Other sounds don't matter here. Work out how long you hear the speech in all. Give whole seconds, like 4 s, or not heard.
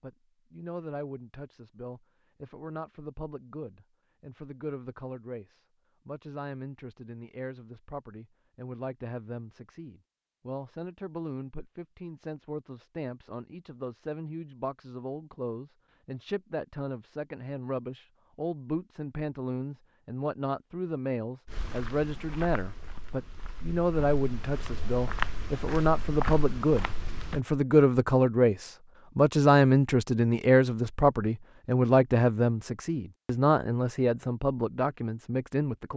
36 s.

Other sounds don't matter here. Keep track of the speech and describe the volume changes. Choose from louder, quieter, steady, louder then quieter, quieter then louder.
louder.